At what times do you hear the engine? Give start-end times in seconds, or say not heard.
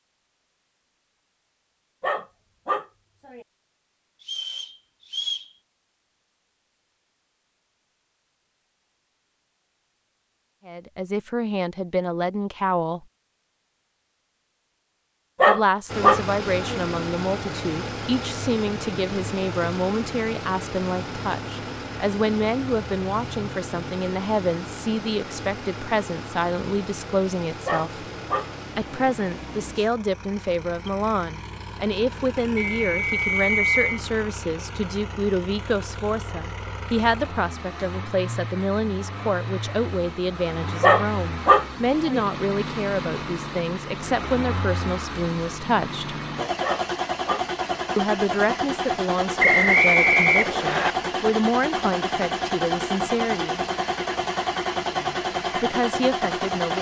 15.8-56.7.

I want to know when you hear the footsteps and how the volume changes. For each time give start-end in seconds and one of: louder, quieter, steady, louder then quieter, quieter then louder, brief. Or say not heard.
not heard.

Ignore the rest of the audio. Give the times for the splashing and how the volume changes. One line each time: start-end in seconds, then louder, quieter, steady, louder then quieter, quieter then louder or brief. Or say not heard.
not heard.